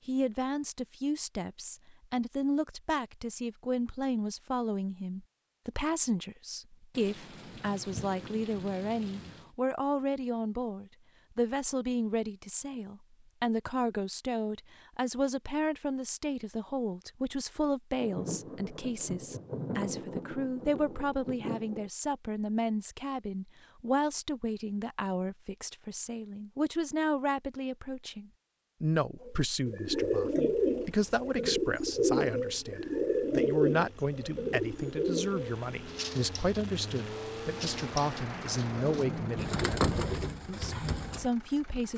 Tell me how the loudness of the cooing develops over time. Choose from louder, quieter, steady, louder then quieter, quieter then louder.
quieter then louder.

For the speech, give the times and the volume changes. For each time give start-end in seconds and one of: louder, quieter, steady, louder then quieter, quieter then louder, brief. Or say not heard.
0.1-41.9 steady.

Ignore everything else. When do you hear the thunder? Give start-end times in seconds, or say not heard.
6.9-9.5, 18.0-21.9, 37.5-39.5.